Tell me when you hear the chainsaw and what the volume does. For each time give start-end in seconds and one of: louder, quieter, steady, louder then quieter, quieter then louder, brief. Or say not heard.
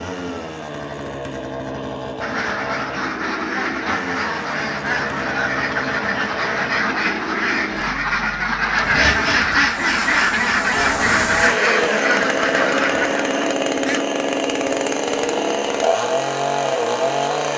0.0-17.5 louder.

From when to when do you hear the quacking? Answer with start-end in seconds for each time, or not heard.
2.2-14.1.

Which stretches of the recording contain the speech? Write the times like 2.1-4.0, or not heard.
not heard.